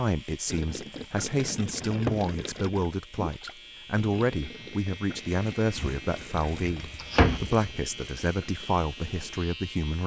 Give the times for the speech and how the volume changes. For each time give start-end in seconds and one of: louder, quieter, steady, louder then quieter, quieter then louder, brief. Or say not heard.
0.0-10.0 steady.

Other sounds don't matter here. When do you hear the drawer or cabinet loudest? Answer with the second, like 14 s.
7 s.